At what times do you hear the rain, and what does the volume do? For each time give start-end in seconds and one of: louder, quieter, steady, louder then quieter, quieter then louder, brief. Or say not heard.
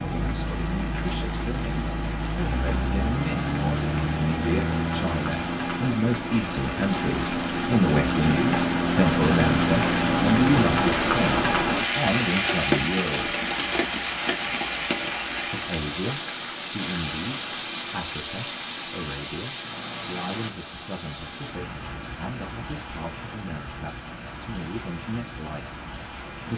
0.0-26.5 louder then quieter.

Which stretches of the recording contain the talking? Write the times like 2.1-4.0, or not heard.
0.1-13.3, 15.4-26.5.